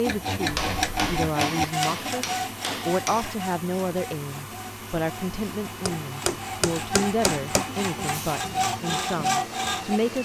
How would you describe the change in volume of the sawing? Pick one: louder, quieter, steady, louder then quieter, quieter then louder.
quieter then louder.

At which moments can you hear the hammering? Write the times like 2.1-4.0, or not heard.
0.5-3.2, 5.8-7.7.